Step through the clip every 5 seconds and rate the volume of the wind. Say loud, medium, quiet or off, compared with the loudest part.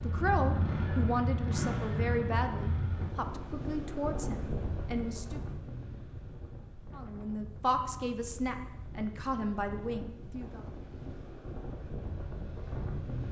loud, medium, loud.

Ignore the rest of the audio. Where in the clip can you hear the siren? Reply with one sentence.
The siren can't be heard in this clip.